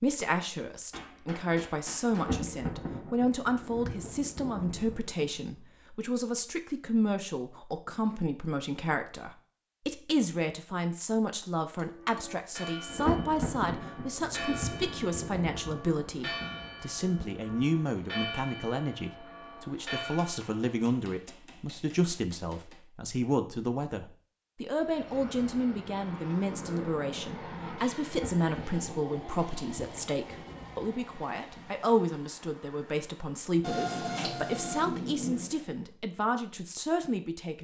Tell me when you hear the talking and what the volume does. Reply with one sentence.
The talking can be heard from 0.0 to 37.5 s, at a steady volume.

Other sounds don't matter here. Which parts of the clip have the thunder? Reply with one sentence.
You can hear the thunder from 2.1 to 5.5 s, from 12.8 to 17.4 s and from 28.0 to 31.8 s.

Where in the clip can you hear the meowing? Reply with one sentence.
You can't hear the meowing here.